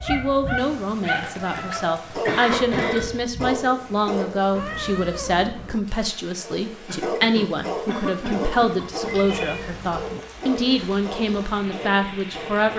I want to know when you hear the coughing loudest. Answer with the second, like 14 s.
2 s.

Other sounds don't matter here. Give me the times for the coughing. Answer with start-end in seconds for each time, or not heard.
1.2-3.1, 6.8-9.3.